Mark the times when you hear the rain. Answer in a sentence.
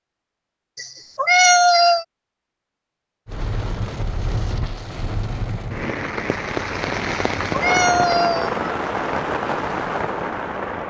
You can hear the rain from 3.2 to 10.8 s.